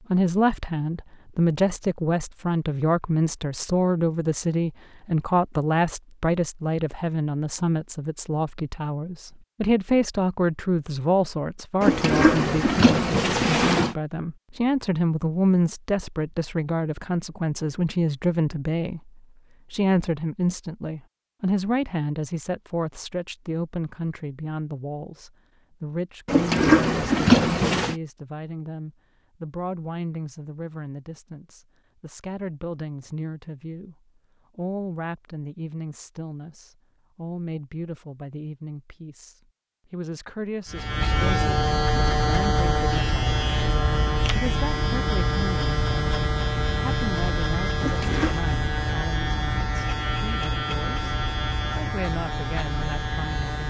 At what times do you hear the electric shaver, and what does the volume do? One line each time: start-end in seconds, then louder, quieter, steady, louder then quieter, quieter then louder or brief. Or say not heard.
40.7-53.6 quieter.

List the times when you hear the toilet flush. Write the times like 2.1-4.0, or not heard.
11.8-13.9, 26.2-27.9, 47.8-48.4.